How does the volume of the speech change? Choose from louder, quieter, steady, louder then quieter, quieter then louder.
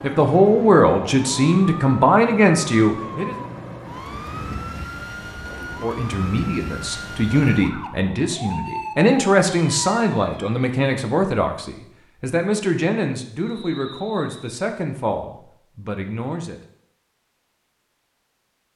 quieter.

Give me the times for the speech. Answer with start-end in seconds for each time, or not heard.
0.0-3.4, 5.8-16.6.